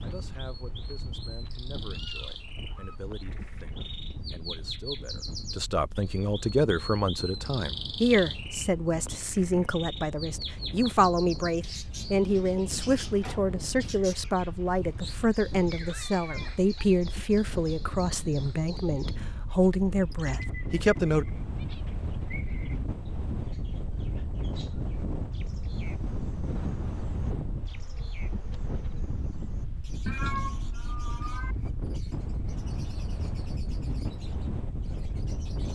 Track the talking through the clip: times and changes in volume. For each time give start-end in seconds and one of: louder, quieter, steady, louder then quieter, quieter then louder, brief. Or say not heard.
0.0-21.2 louder.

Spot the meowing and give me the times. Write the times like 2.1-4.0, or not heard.
1.9-3.0, 15.7-16.9, 30.1-31.6.